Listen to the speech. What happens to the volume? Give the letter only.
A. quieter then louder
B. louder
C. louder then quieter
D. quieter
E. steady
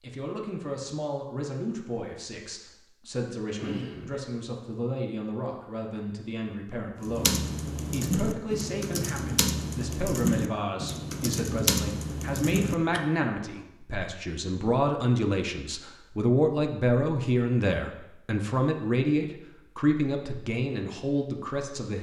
B.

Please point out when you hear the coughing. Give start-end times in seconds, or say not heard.
3.5-4.2.